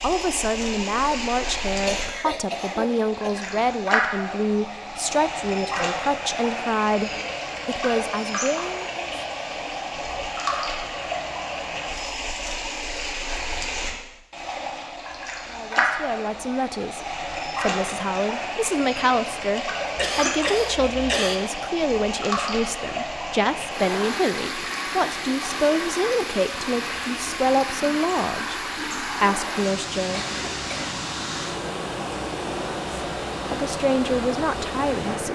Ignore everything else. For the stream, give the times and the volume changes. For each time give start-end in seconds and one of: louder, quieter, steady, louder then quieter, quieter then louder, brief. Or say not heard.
0.0-35.2 steady.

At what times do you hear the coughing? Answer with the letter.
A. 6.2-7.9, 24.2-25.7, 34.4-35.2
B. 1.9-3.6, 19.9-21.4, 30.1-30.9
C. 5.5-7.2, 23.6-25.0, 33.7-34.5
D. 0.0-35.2
B.